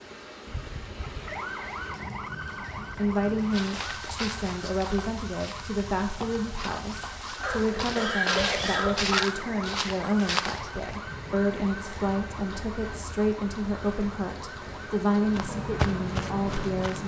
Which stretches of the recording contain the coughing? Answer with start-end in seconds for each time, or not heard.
7.4-9.3.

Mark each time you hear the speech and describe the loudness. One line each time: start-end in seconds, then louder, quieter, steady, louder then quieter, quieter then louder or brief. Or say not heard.
2.8-17.0 steady.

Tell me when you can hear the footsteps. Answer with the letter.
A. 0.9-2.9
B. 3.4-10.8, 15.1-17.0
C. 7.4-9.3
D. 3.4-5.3
B.